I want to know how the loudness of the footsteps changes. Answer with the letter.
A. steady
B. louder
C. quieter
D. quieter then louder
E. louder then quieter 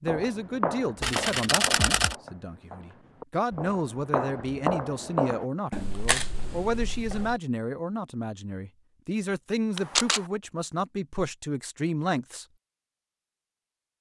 D.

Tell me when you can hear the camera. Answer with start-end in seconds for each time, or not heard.
1.0-2.1, 5.7-7.3, 9.8-10.2.